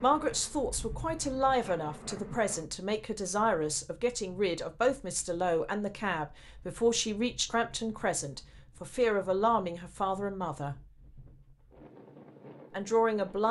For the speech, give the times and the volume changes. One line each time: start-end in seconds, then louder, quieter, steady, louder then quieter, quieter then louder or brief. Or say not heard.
0.0-10.8 steady
12.7-13.4 brief.